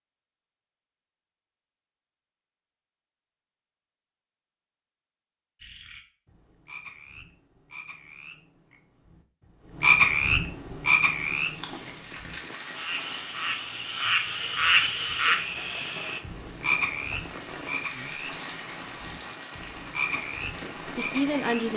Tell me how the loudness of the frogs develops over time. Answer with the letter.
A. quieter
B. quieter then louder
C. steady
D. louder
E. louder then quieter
E.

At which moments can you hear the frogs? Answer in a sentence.
You can hear the frogs from 5.6 to 21.5 s.